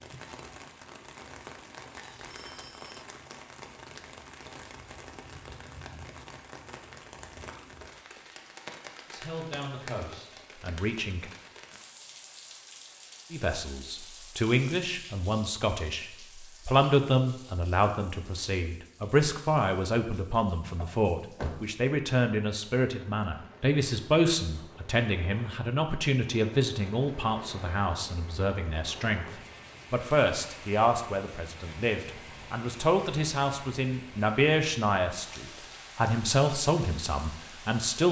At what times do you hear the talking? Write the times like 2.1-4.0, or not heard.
9.1-11.2, 13.3-29.3, 29.9-38.0.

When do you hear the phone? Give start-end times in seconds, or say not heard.
2.2-3.0.